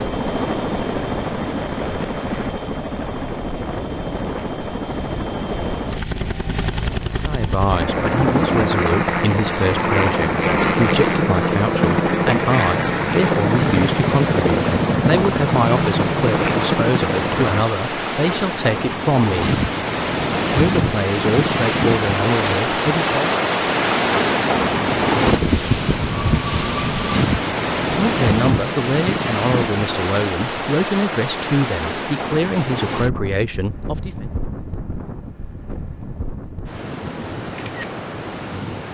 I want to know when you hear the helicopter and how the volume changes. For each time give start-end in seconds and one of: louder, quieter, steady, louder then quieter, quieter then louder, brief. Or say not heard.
0.0-17.6 louder.